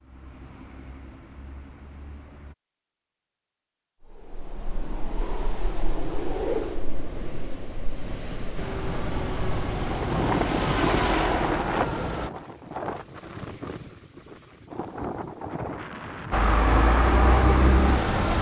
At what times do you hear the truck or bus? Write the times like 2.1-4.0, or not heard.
0.0-2.5, 8.6-12.3, 16.3-18.3.